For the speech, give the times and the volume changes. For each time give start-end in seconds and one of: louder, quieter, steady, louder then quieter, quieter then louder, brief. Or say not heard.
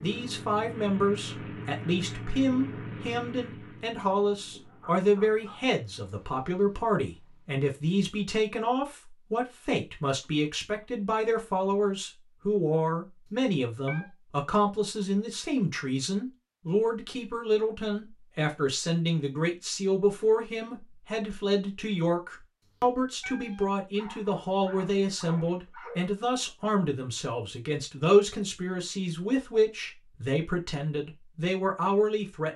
0.0-32.5 steady.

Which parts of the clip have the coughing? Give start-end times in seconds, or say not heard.
not heard.